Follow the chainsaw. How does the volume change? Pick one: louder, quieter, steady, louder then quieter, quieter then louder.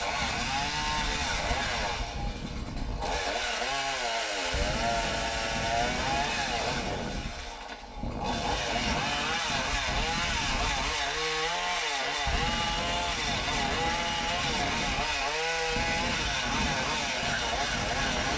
steady.